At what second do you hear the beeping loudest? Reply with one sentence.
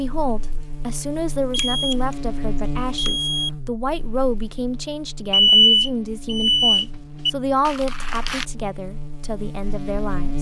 The volume of the beeping peaks at 6 seconds.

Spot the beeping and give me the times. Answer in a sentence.
You can hear the beeping from 1.5 to 1.9 s, from 3.0 to 3.5 s and from 5.3 to 7.3 s.